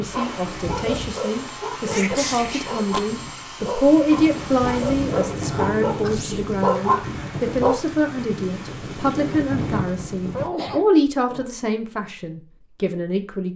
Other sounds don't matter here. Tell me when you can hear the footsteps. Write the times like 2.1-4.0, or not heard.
not heard.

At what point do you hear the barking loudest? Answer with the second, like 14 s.
7 s.